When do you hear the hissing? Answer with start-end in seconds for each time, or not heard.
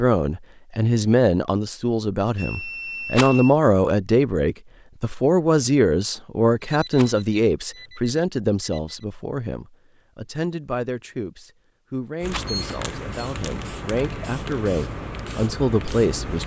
12.2-16.4.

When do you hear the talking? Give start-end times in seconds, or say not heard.
0.0-16.4.